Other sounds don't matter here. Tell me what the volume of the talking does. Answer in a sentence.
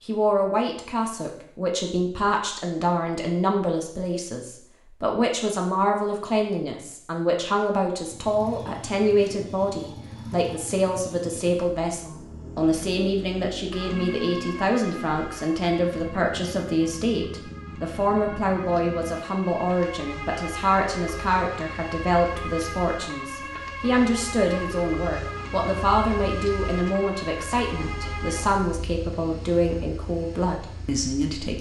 The volume of the talking stays about the same.